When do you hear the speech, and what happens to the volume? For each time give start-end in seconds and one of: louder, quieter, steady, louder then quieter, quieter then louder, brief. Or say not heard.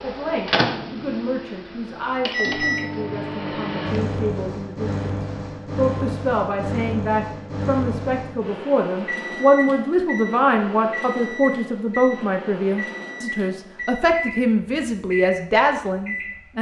0.0-16.5 louder.